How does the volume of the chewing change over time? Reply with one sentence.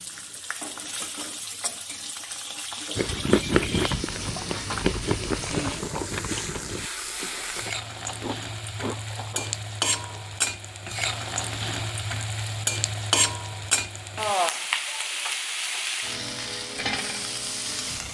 The volume of the chewing goes down.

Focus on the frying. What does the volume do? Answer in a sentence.
The loudness of the frying goes up.